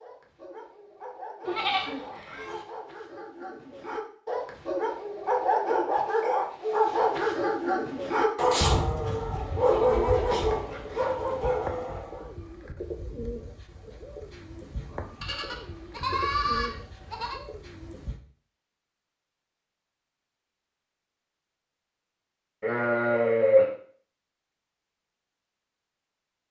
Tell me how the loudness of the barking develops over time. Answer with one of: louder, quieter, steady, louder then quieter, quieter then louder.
louder.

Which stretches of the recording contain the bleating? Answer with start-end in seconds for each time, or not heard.
1.4-2.6, 8.6-10.6, 15.2-17.4, 22.6-23.8.